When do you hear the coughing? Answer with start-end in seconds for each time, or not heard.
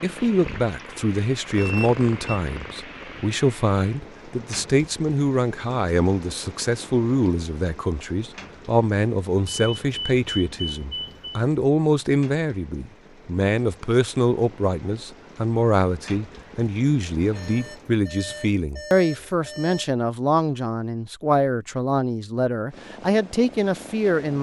not heard.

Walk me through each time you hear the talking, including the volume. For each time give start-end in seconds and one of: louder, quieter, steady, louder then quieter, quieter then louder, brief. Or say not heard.
0.0-24.3 steady.